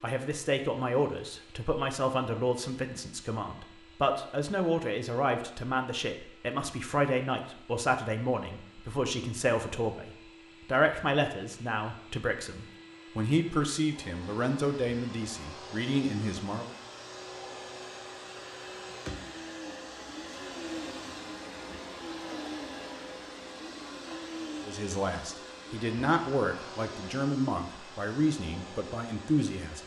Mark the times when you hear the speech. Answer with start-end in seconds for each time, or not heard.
0.0-16.8, 24.6-29.8.